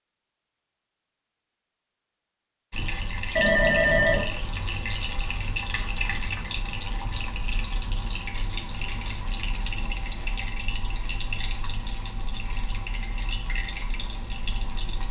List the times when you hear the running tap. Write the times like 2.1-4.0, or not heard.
2.7-15.0.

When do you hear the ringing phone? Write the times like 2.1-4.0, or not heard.
3.4-4.2.